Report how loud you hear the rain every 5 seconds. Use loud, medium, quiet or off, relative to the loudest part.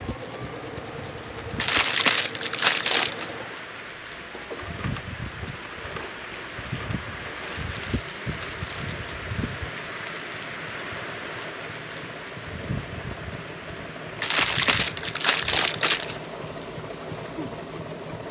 loud, loud, loud, medium.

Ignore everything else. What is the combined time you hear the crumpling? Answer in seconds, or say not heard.
5 s.